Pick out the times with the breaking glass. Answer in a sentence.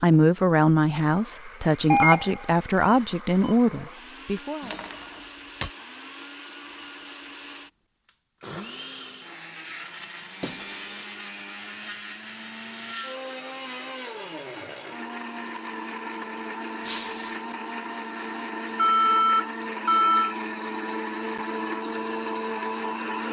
You can hear the breaking glass from 4.6 to 5.7 s, from 10.4 to 11.1 s and from 16.8 to 17.4 s.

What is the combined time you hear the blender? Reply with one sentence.
You can hear the blender for 23 seconds altogether.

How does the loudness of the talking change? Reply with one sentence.
The loudness of the talking stays about the same.